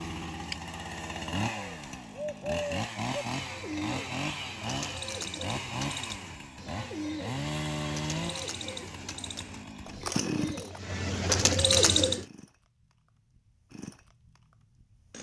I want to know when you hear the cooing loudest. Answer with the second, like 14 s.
12 s.